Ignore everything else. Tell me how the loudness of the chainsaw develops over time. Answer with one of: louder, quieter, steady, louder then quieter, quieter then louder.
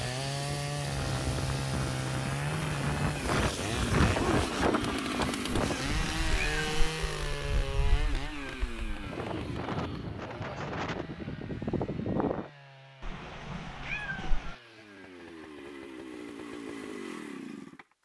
quieter then louder.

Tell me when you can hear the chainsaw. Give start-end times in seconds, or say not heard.
0.0-17.9.